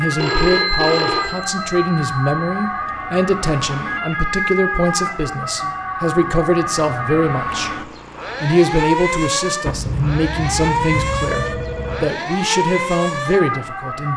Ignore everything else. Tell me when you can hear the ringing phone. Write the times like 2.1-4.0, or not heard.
0.1-2.6, 5.6-7.2, 9.7-12.1.